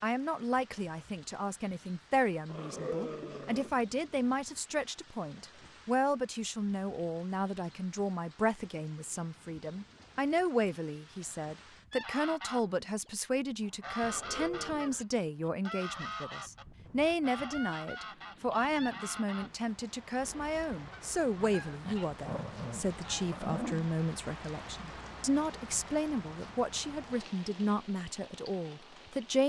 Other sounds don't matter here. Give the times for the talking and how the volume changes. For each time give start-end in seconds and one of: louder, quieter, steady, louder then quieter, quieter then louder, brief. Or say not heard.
0.0-29.4 steady.